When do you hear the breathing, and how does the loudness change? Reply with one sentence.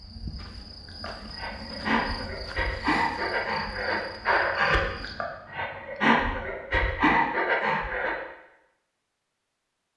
You can hear the breathing from 0.8 to 8.2 s, getting louder.